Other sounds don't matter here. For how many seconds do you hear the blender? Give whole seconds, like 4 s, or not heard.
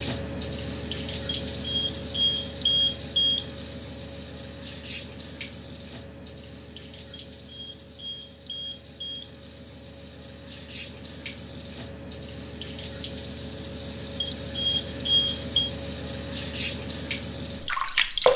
not heard.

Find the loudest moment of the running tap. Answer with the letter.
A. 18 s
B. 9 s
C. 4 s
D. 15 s
A.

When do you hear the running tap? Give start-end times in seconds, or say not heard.
0.0-18.3.